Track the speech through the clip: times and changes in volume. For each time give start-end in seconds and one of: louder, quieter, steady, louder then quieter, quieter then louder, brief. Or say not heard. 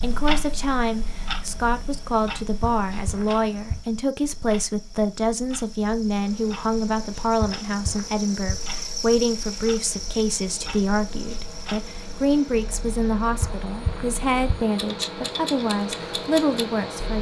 0.0-17.1 steady.